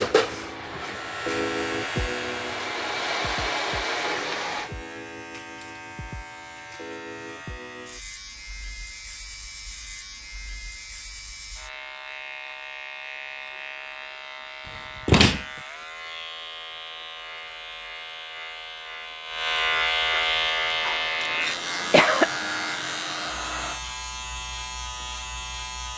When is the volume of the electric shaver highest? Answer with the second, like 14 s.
20 s.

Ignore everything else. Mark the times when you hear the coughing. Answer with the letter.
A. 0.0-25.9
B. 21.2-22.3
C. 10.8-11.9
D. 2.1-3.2
B.